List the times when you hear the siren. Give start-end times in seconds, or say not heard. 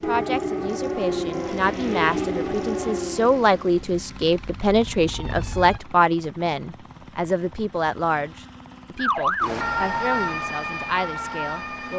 0.0-5.8, 8.9-11.9.